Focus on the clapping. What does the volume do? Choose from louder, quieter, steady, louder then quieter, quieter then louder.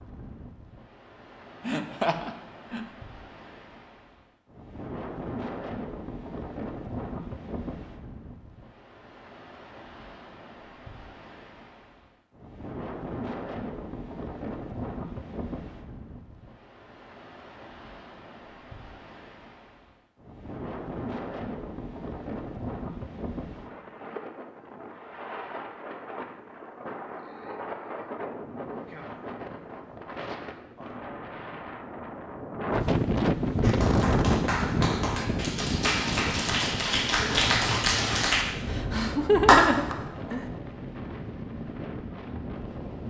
louder.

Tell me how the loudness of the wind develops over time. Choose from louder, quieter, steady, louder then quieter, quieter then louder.
louder.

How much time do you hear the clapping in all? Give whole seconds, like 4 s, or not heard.
6 s.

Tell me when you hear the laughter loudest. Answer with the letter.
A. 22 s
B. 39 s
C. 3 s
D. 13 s
B.